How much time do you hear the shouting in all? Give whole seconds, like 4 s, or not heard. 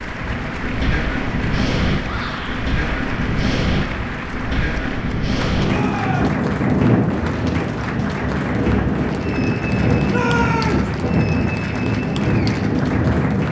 2 s.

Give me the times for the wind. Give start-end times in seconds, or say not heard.
0.0-13.4.